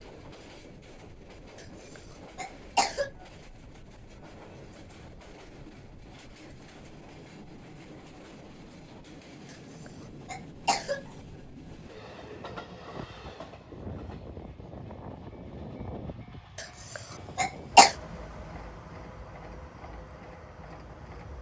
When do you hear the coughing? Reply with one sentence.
You can hear the coughing from 1.6 to 3.1 s, from 9.5 to 11.0 s and from 16.6 to 17.9 s.